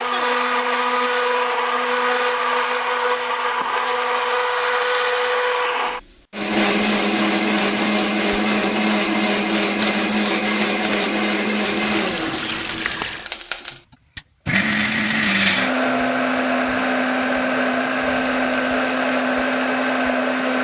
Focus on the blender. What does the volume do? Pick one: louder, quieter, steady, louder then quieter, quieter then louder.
steady.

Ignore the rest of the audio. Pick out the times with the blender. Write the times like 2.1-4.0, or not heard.
0.0-20.5.